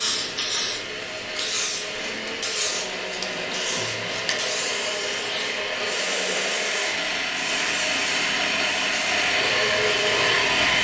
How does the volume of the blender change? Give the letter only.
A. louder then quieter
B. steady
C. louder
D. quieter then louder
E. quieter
C.